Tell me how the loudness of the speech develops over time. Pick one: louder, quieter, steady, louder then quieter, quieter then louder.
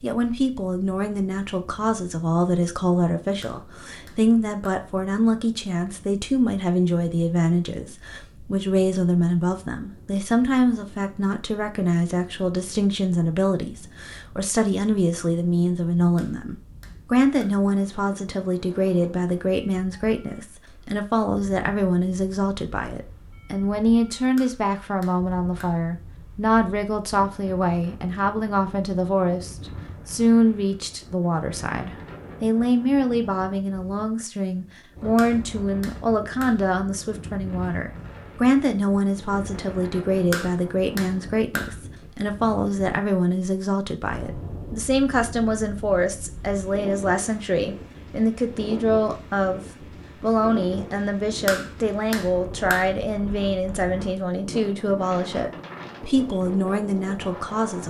steady.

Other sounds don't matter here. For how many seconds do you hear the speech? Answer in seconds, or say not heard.
57 s.